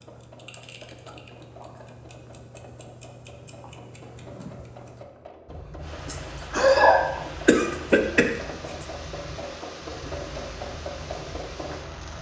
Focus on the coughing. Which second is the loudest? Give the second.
7 s.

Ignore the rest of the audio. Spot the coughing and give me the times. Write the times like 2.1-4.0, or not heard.
6.0-8.8.